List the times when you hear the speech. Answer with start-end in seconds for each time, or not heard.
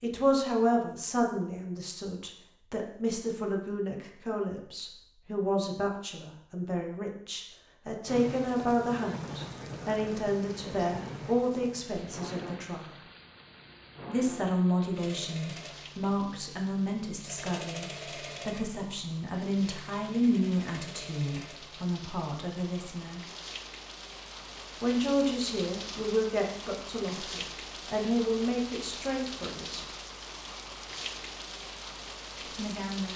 0.0-12.9, 14.1-23.2, 24.8-29.9, 32.5-33.1.